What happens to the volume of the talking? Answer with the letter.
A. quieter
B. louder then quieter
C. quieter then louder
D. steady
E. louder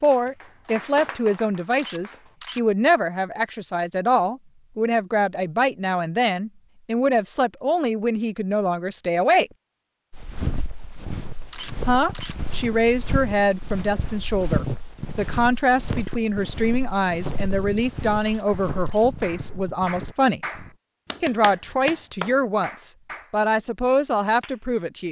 D.